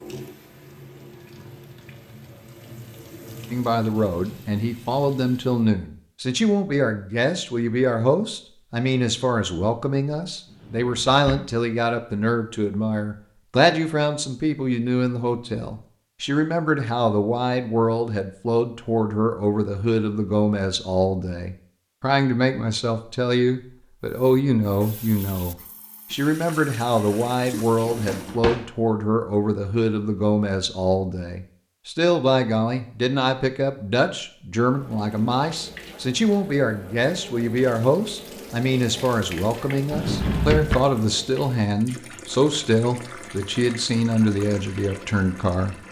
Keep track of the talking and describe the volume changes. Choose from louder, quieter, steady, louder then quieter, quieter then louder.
steady.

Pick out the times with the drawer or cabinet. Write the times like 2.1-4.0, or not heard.
10.4-11.6, 27.8-28.7, 39.9-40.8.